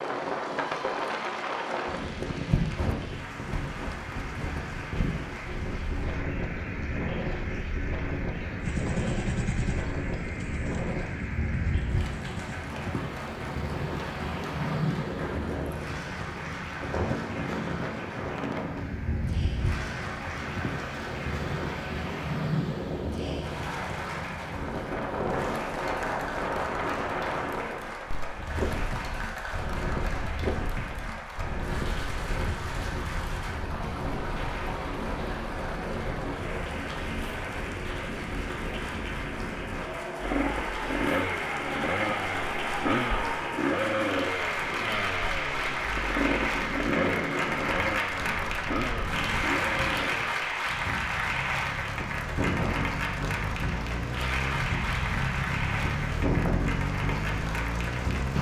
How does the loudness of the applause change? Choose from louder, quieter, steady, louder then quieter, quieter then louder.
louder.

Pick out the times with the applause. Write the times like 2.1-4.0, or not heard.
0.0-58.3.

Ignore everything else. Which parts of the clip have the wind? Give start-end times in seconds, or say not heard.
0.0-58.3.